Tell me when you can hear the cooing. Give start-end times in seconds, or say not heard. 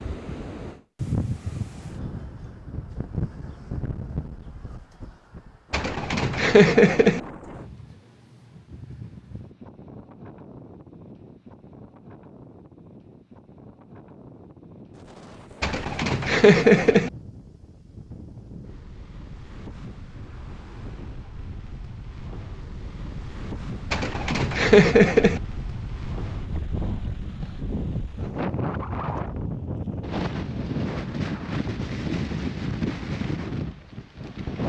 5.7-7.2, 15.6-17.1, 23.9-25.4.